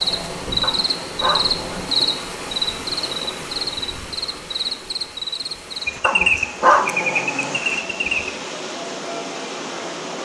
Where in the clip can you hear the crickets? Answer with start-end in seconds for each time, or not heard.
0.0-8.3.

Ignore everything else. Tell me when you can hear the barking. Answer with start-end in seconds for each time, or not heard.
0.6-2.2, 6.0-7.6.